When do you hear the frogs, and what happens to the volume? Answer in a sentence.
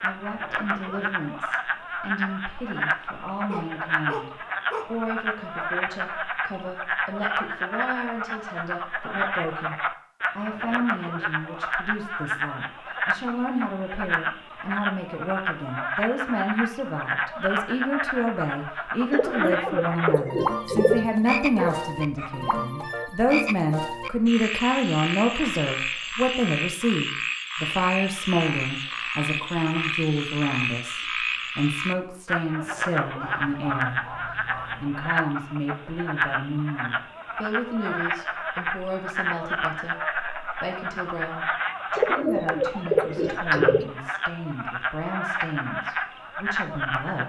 The frogs can be heard from 0.0 to 47.2 s, at a steady volume.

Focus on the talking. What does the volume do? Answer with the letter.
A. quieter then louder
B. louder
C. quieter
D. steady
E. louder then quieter
E.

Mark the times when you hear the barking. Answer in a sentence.
The barking can be heard from 3.5 to 5.0 s, from 21.6 to 22.6 s and from 33.2 to 35.0 s.